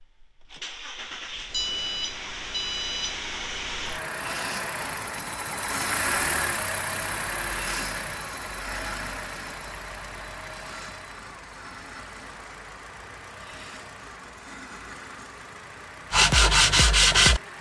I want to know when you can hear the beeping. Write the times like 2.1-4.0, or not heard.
1.5-3.2.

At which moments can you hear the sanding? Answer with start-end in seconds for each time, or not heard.
16.1-17.4.